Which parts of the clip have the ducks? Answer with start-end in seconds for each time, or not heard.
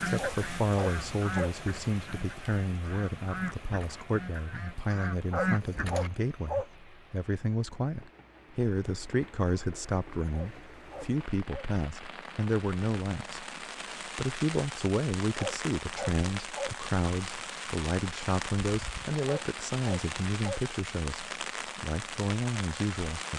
0.0-6.1.